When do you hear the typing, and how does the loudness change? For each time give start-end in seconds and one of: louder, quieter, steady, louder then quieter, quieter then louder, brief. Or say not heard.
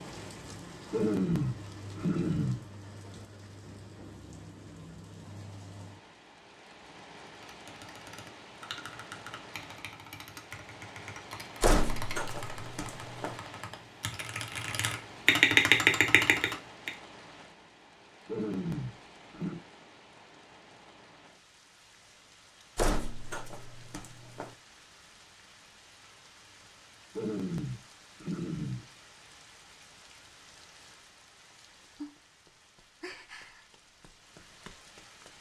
7.4-16.9 louder.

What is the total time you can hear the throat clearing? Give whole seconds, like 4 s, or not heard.
5 s.